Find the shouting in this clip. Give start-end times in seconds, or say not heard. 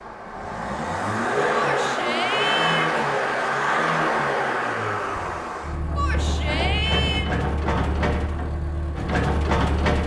1.5-3.0, 6.0-7.2.